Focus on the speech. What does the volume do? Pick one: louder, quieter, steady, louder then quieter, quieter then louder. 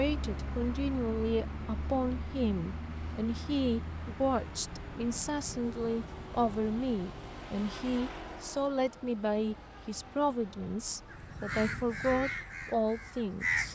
steady.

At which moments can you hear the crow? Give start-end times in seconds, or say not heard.
11.1-13.7.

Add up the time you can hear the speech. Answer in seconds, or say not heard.
14 s.